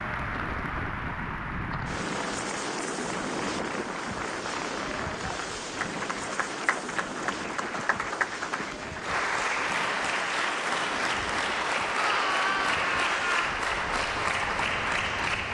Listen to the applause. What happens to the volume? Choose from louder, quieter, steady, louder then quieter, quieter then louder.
louder.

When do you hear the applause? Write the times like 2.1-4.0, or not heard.
0.0-15.4.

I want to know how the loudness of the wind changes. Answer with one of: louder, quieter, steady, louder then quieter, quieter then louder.
quieter.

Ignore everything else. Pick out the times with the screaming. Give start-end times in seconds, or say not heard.
11.9-13.5.